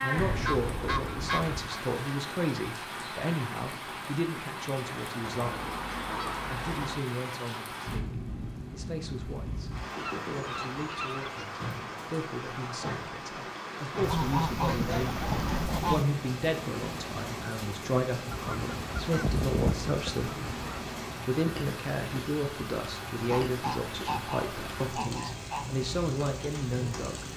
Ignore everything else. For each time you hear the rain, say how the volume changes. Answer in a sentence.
The rain can be heard from 0.0 to 27.3 s, at a steady volume.